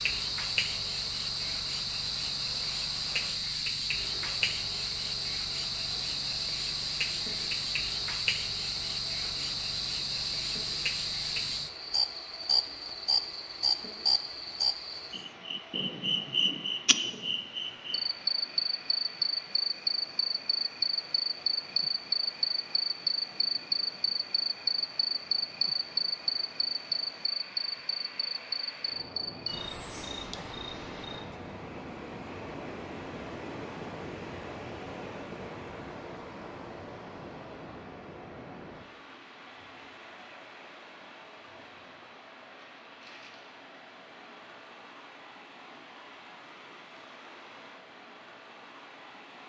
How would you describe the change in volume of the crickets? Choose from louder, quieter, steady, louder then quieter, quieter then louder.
steady.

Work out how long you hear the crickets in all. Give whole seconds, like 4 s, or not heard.
31 s.